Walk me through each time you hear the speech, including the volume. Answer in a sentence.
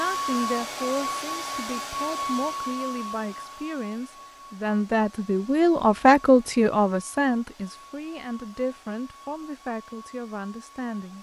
You can hear the speech from 0.0 to 11.1 s, getting louder then quieter.